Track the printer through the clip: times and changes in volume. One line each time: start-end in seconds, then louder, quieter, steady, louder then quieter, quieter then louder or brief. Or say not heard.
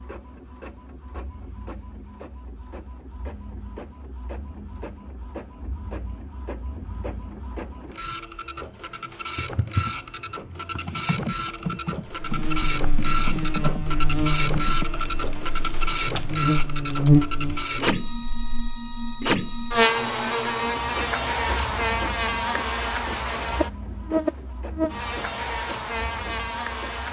0.0-27.0 louder then quieter.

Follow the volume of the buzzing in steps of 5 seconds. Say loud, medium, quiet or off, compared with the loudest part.
off, off, medium, loud, loud, medium.